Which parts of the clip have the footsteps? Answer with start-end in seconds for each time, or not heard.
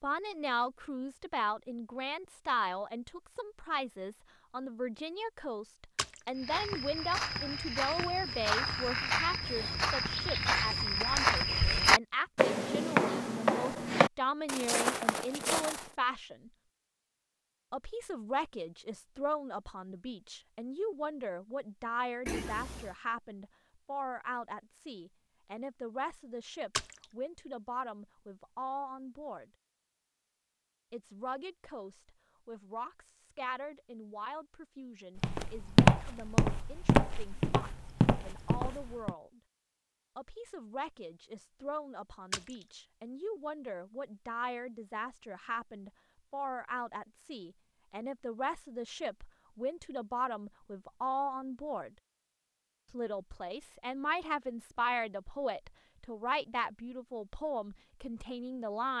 6.3-15.9, 35.1-39.1.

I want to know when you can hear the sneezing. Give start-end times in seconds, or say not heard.
22.2-22.9.